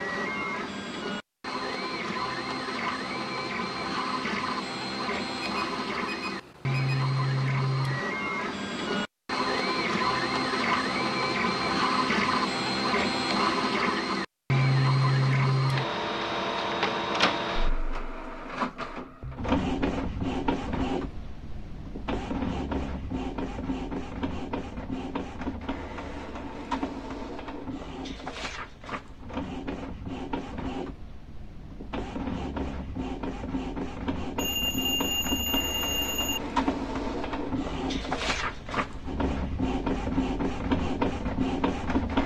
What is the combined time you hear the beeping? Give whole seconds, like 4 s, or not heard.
4 s.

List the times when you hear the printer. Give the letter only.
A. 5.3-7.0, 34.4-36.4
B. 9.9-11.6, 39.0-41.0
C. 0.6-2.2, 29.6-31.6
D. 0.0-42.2
D.